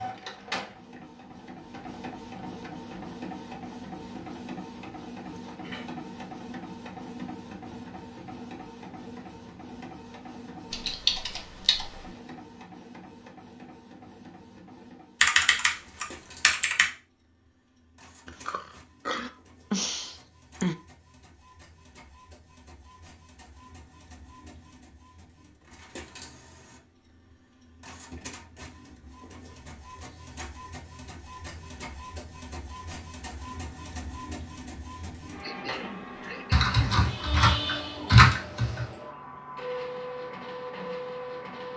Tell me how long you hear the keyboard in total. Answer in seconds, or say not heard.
5 s.